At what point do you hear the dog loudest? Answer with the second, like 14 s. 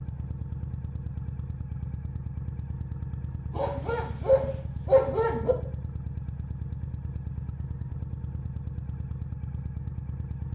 5 s.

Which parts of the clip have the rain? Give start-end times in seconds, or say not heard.
not heard.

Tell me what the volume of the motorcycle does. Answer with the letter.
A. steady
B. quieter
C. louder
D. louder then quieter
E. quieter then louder
A.